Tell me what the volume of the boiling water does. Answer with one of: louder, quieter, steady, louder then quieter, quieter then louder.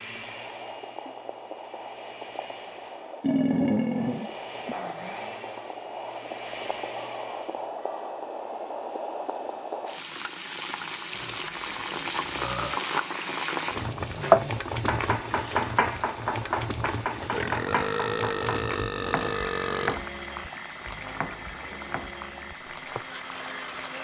louder then quieter.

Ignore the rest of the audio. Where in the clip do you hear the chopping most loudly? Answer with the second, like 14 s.
14 s.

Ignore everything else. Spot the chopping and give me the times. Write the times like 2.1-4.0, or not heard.
14.0-23.1.